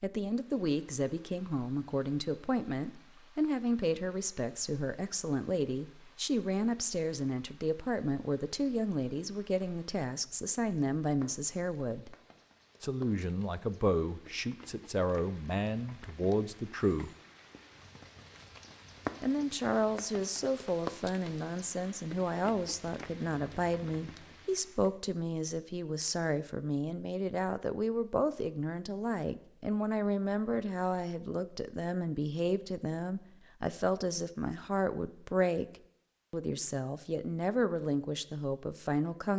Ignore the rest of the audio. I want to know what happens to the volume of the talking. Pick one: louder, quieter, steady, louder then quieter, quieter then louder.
steady.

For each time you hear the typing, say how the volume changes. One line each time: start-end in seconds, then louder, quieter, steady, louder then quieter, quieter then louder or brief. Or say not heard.
not heard.